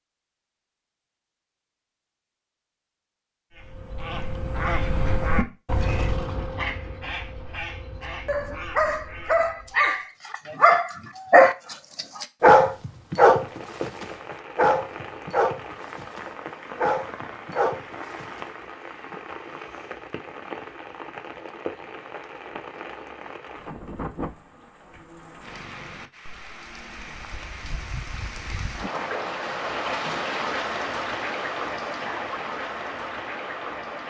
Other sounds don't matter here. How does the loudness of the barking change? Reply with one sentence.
The loudness of the barking goes up, then down.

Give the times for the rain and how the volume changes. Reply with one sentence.
You can hear the rain from 13.2 to 34.0 s, getting louder.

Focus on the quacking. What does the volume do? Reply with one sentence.
The volume of the quacking goes down.